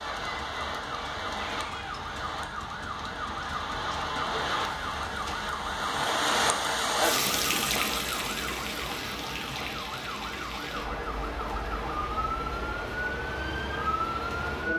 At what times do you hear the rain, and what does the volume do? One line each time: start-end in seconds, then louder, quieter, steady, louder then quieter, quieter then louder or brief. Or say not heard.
0.0-14.7 louder then quieter.